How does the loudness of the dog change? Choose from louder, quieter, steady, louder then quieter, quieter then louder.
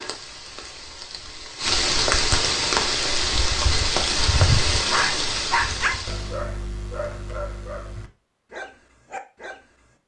quieter.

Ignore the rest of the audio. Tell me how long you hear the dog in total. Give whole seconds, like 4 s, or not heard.
5 s.